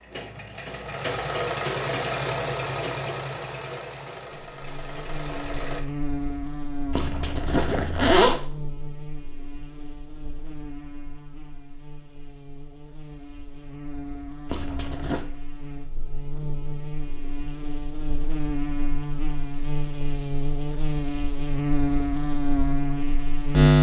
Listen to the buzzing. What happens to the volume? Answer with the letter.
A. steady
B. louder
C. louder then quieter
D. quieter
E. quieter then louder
E.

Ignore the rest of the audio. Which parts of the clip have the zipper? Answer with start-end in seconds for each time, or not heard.
6.9-8.4, 14.4-15.2.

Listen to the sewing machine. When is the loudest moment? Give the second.
2 s.